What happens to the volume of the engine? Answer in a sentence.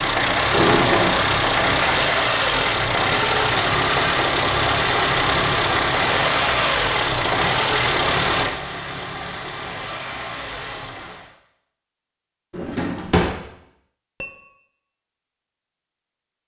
The volume of the engine goes down.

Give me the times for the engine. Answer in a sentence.
The engine can be heard from 0.0 to 11.3 s.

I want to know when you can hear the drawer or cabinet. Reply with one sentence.
You can hear the drawer or cabinet from 0.5 to 1.2 s and from 12.5 to 13.3 s.